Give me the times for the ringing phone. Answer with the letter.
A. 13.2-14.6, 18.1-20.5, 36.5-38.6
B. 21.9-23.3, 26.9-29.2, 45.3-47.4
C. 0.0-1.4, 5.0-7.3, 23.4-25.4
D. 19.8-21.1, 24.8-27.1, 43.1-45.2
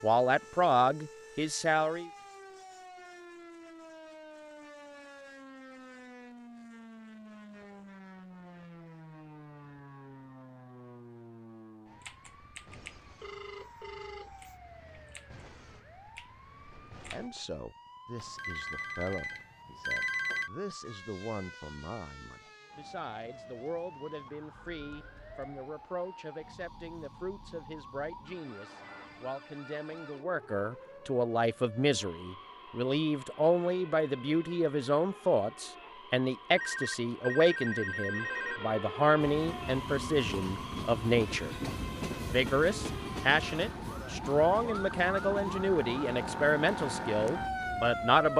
A.